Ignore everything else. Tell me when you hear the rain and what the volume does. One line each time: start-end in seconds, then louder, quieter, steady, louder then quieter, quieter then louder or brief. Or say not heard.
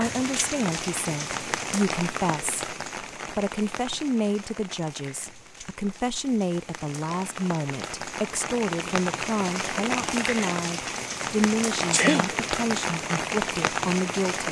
0.0-14.4 quieter then louder.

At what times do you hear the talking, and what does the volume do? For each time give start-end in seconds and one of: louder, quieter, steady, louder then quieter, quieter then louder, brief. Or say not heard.
0.0-14.4 steady.